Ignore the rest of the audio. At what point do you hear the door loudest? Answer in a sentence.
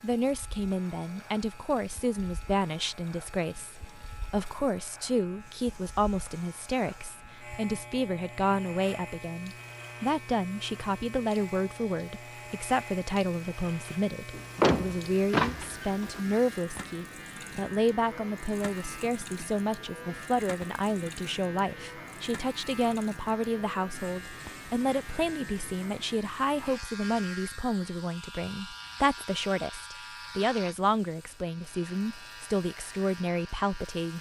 The loudest moment of the door is at 15 seconds.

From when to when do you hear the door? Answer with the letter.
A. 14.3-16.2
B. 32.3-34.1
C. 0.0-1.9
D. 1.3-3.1
A.